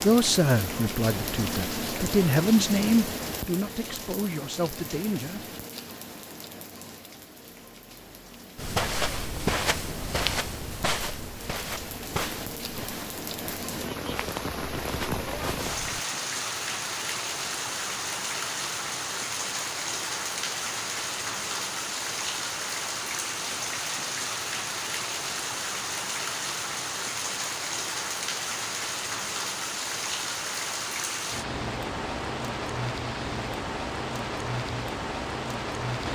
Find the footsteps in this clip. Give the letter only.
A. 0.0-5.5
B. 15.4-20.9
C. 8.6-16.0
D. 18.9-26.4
C.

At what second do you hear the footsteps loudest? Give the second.
10 s.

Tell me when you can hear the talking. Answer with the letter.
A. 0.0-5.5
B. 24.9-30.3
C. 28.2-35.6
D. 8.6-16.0
A.